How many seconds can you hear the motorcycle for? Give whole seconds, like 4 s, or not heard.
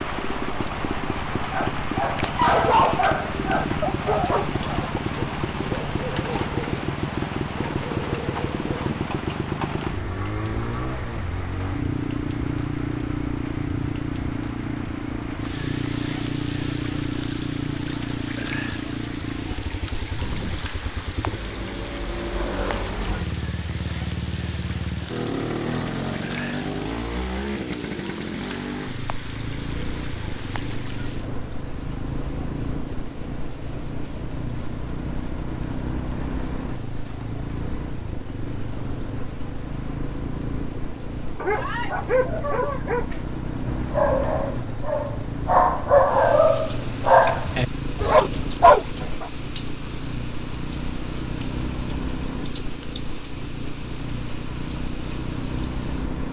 56 s.